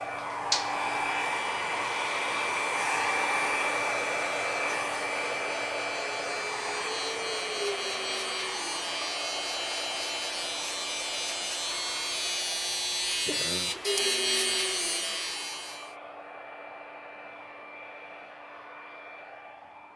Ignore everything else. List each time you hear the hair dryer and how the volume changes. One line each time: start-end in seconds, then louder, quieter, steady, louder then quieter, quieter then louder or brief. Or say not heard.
0.0-19.9 quieter.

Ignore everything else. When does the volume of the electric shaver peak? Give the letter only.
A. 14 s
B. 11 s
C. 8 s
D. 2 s
A.